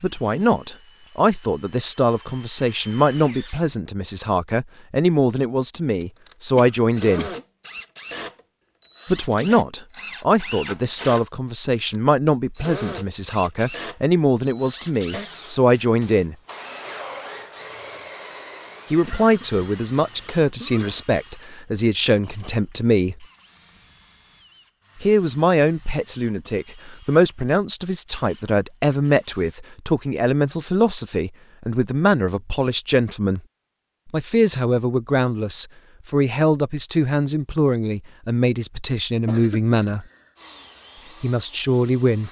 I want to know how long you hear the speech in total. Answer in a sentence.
The speech can be heard for 34 seconds in total.